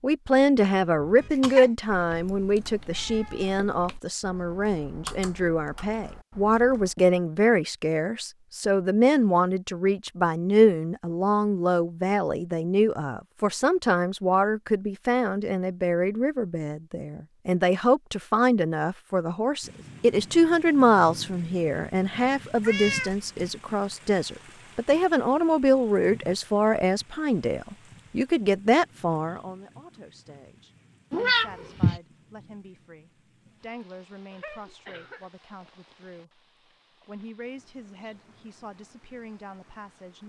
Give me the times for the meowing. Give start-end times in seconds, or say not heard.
2.0-3.9, 22.6-23.4, 31.1-32.0.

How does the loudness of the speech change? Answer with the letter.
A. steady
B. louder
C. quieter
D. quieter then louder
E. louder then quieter
C.